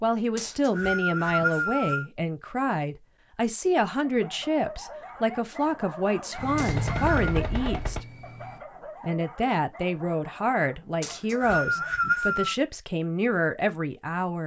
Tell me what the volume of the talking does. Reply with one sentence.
The loudness of the talking stays about the same.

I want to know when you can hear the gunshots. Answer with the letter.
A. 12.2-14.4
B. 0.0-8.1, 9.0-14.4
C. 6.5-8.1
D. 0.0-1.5
C.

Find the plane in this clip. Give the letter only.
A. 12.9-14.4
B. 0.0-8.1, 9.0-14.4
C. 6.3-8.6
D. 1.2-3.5
C.